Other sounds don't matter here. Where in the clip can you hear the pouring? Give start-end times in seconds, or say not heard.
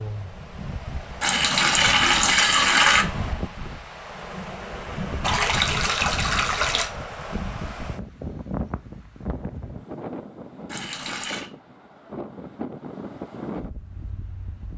1.2-3.0, 5.2-6.9, 10.7-11.5.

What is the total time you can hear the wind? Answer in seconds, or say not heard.
15 s.